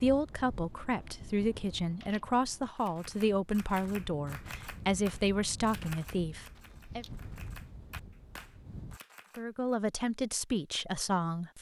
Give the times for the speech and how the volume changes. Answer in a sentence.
The speech can be heard from 0.0 to 7.0 s, at a steady volume; and briefly from 9.3 to 11.5 s.